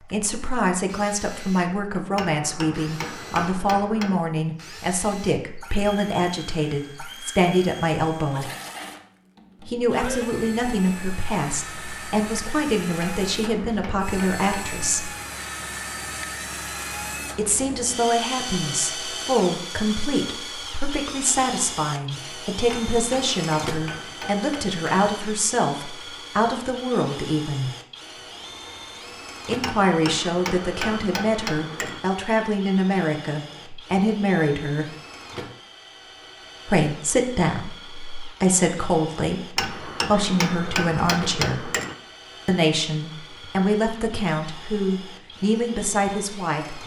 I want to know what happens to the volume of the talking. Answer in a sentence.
The loudness of the talking stays about the same.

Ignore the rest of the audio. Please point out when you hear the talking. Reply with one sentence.
The talking can be heard from 0.1 to 8.5 s, from 9.7 to 15.1 s, from 17.4 to 27.7 s, from 29.4 to 34.9 s, from 36.6 to 41.7 s and from 42.5 to 46.8 s.